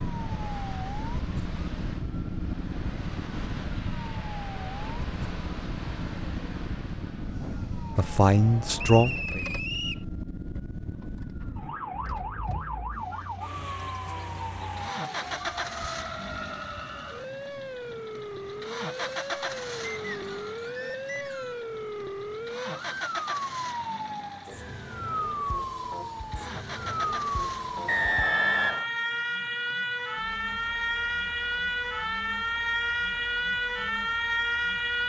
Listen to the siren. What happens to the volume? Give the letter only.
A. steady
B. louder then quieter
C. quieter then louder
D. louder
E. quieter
D.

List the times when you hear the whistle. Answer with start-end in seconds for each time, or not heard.
8.8-10.1, 20.1-21.6, 27.9-28.9.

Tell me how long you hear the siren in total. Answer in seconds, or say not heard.
35 s.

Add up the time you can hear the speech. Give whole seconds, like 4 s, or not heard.
2 s.